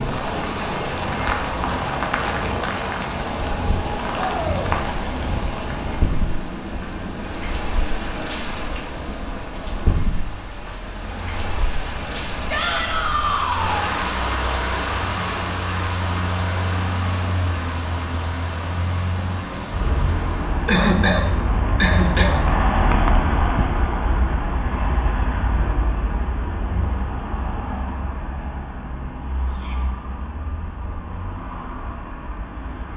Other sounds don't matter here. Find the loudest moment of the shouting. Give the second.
13 s.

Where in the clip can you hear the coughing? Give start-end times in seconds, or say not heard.
20.6-22.4.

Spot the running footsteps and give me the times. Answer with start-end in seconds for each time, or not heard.
not heard.